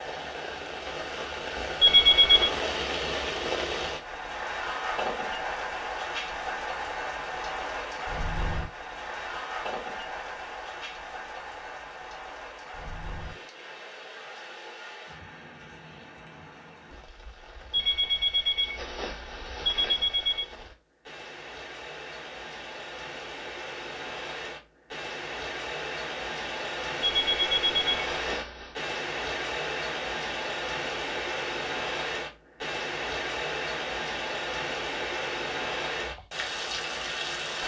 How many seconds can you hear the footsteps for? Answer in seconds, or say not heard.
not heard.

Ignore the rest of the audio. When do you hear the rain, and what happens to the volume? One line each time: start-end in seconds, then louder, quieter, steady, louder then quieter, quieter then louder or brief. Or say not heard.
0.0-37.6 quieter then louder.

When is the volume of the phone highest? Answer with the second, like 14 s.
2 s.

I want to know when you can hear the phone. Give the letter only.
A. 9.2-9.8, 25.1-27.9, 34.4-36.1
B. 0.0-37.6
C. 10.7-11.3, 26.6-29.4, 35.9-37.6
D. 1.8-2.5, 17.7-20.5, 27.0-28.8
D.